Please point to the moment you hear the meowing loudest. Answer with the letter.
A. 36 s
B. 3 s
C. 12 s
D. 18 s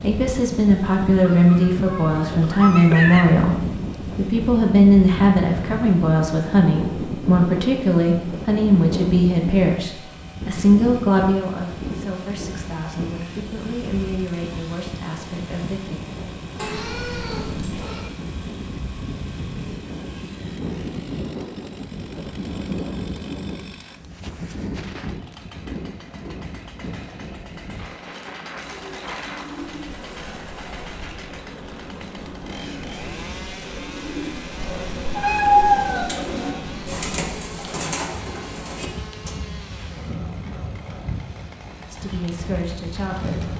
A.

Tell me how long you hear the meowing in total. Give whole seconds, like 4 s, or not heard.
5 s.